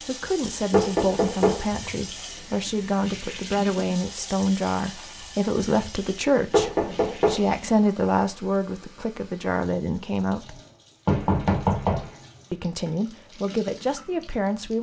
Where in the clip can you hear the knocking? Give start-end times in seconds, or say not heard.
0.7-1.6, 6.5-7.4, 11.1-12.2.